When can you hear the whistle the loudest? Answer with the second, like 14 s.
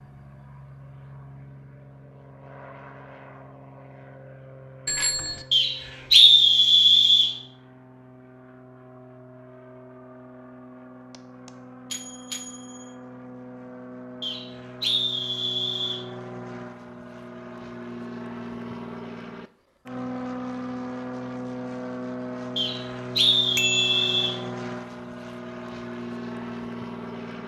6 s.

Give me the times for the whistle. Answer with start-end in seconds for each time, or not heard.
5.5-7.3, 14.2-16.0, 22.6-24.4.